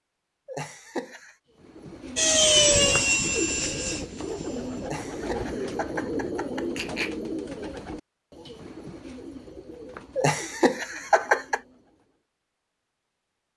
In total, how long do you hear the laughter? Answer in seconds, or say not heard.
5 s.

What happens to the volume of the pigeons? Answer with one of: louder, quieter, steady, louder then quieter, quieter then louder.
quieter.